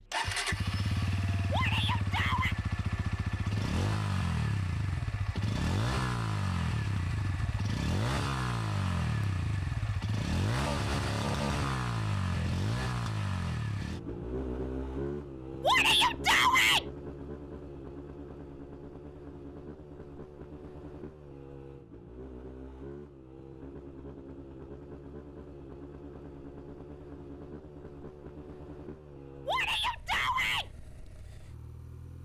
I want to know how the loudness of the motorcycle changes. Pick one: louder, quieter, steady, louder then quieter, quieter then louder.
quieter.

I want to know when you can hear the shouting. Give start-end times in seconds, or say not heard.
1.5-2.5, 15.6-16.9, 29.4-30.6.